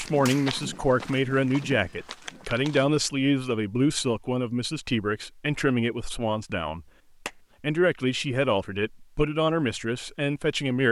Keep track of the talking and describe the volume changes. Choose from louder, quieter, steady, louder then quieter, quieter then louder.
steady.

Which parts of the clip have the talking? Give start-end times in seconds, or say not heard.
0.0-6.8, 7.6-10.8.